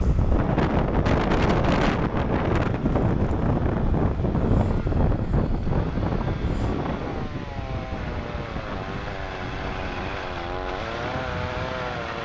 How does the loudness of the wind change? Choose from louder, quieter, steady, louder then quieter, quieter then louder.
quieter.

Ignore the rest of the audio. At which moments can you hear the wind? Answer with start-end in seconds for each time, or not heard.
0.0-12.1.